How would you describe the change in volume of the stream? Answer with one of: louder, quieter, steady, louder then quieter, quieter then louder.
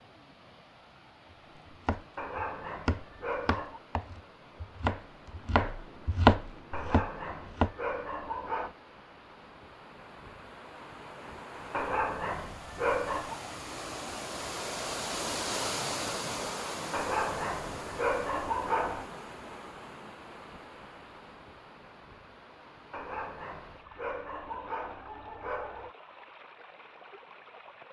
louder then quieter.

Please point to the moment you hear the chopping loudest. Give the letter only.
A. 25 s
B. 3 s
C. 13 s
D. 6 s
D.